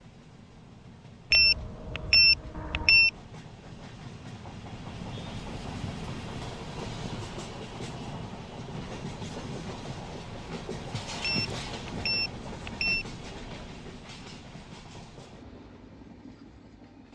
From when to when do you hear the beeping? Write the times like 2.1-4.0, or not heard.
1.3-3.1, 11.2-13.1.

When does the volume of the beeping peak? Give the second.
2 s.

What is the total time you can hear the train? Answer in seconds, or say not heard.
17 s.